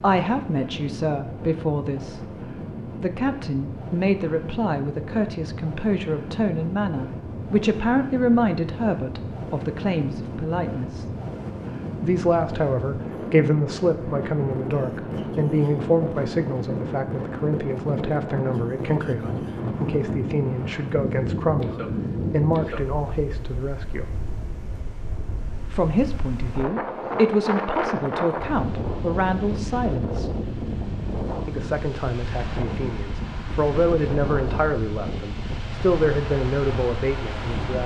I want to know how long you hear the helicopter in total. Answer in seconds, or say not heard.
not heard.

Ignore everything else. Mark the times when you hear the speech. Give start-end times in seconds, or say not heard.
0.0-2.2, 3.0-11.1, 12.0-24.1, 25.7-30.2, 31.4-37.8.